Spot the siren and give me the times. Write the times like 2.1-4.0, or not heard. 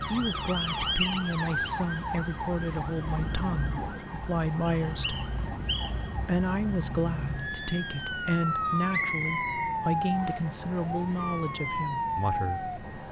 0.0-13.0.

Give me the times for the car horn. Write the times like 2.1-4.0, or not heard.
not heard.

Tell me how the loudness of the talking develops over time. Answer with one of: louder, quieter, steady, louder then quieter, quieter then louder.
steady.